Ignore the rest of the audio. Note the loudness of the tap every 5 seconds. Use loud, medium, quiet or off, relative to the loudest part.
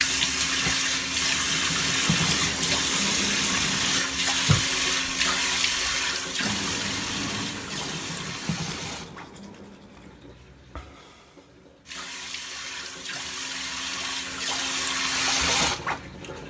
loud, medium, medium, loud.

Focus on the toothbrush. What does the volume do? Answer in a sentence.
The volume of the toothbrush goes down.